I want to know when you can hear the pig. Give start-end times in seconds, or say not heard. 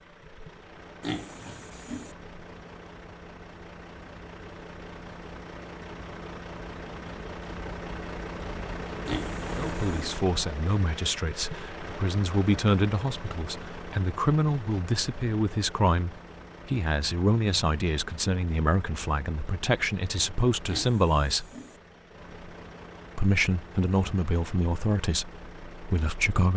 1.0-2.1, 9.1-10.2, 20.6-21.8.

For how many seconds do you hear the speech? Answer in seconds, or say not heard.
15 s.